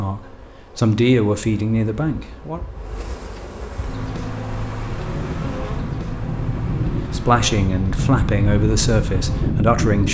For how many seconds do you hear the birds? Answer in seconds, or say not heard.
not heard.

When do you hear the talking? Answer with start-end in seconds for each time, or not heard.
0.0-2.6, 7.1-10.0.